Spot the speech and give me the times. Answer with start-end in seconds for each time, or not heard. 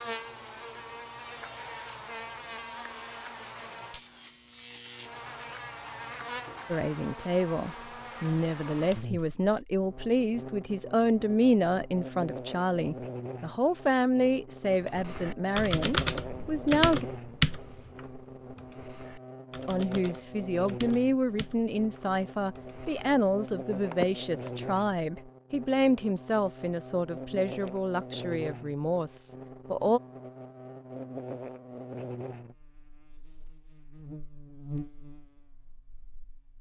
6.7-17.1, 19.6-30.0.